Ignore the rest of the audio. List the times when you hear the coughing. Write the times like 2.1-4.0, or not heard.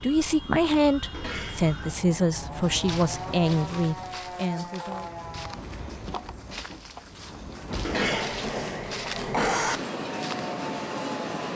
1.1-1.9, 7.8-9.8.